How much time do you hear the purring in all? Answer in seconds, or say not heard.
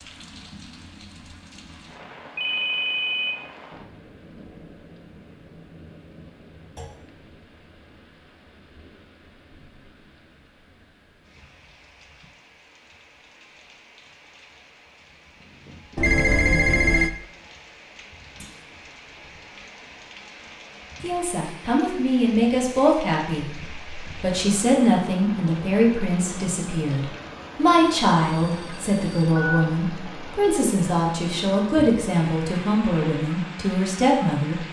2 s.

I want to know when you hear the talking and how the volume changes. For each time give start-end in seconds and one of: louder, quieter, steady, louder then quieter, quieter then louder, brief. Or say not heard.
21.0-34.6 steady.